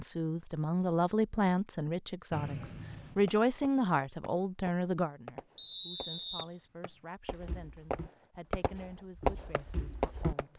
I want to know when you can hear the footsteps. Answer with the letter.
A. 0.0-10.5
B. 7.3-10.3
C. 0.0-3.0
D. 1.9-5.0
B.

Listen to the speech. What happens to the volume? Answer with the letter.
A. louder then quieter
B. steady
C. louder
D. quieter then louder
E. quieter
E.